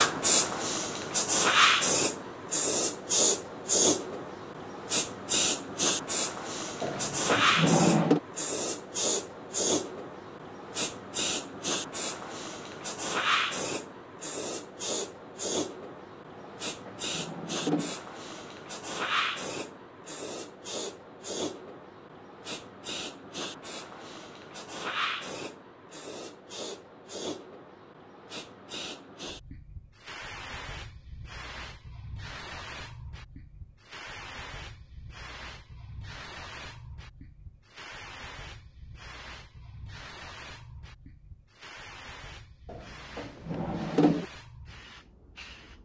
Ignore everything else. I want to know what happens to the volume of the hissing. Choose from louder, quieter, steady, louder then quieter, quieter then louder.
quieter.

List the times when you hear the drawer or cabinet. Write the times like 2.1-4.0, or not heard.
6.8-8.2, 16.4-17.9, 42.6-44.2.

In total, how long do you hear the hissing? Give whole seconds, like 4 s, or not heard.
46 s.